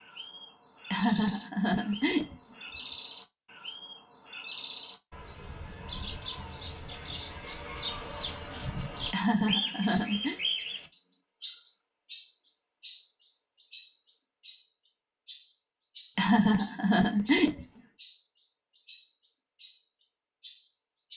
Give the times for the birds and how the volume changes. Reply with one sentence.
You can hear the birds from 0.0 to 21.1 s, getting louder then quieter.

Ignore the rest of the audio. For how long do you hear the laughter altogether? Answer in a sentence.
The laughter can be heard for 4 seconds in total.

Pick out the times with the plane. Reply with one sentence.
The plane can't be heard in this clip.